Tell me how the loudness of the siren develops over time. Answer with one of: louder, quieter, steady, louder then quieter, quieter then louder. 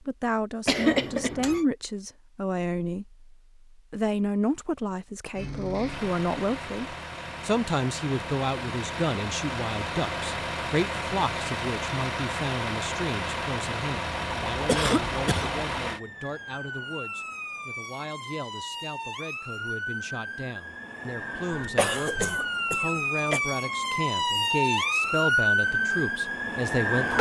louder.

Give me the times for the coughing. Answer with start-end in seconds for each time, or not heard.
0.7-1.6, 14.7-15.6, 21.6-23.4.